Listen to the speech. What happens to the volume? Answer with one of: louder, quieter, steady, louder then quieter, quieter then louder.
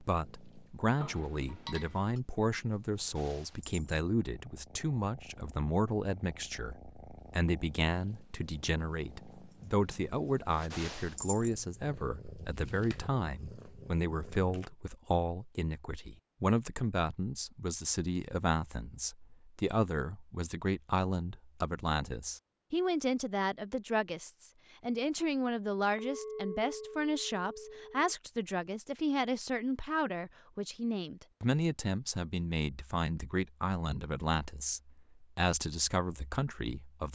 steady.